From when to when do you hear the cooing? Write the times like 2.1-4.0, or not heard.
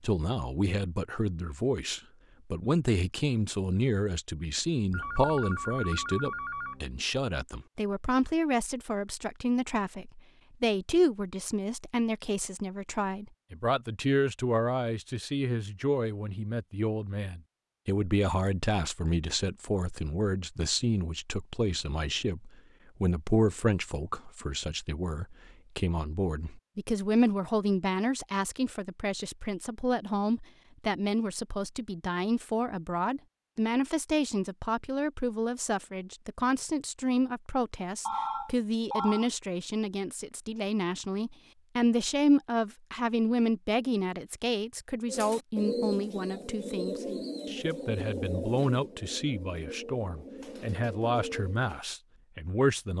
45.0-51.8.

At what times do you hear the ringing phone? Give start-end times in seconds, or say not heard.
4.9-6.8, 38.0-39.2.